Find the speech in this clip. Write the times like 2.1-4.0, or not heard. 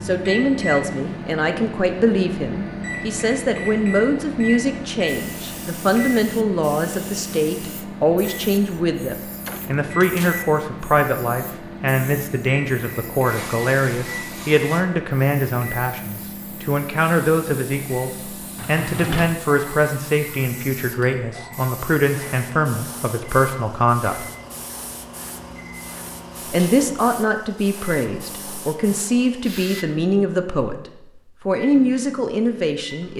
0.0-24.2, 26.5-30.8, 31.4-33.1.